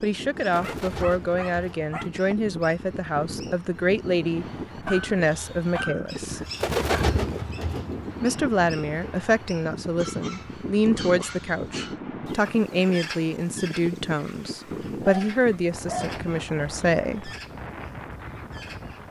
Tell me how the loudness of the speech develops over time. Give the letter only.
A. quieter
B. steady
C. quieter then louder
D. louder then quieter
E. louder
B.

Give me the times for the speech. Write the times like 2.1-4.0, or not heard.
0.0-6.5, 8.2-17.3.